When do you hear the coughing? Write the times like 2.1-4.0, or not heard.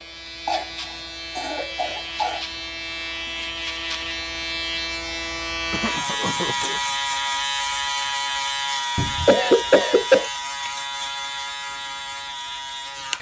0.5-2.5, 5.7-6.8, 9.2-10.3.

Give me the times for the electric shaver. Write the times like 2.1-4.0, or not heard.
0.0-13.1.